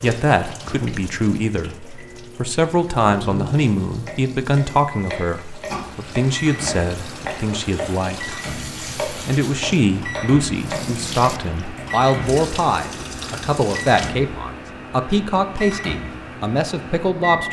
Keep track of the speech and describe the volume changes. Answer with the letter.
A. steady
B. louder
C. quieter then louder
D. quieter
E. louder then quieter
A.